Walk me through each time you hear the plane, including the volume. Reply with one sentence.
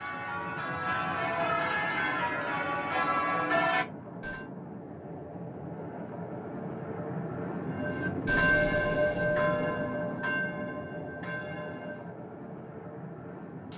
You can hear the plane from 0.0 to 13.7 s, getting louder then quieter.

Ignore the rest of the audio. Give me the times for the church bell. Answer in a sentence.
The church bell can be heard from 0.0 to 4.5 s and from 7.7 to 12.1 s.